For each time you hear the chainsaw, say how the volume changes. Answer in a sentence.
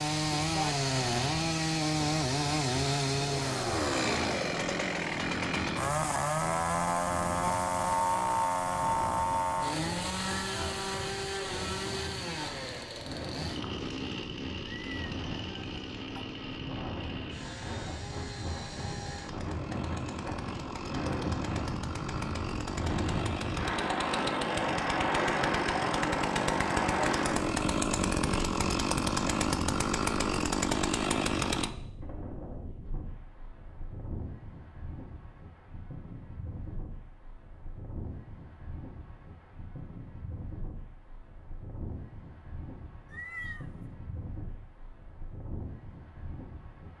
The chainsaw can be heard from 0.0 to 31.7 s, getting quieter then louder.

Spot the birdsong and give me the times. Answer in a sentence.
You can't hear the birdsong here.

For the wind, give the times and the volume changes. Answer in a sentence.
The wind can be heard from 0.2 to 46.9 s, getting louder then quieter.